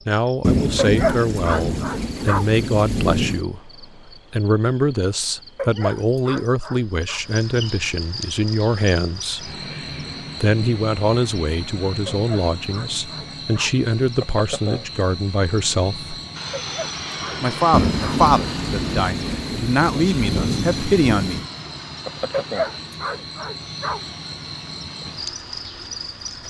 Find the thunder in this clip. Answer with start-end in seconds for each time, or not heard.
0.4-3.5, 17.7-21.4.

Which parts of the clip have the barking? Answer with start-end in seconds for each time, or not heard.
0.8-2.5, 5.5-7.2, 12.1-13.8, 16.6-18.2, 22.3-24.1.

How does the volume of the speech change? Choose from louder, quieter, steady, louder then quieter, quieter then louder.
steady.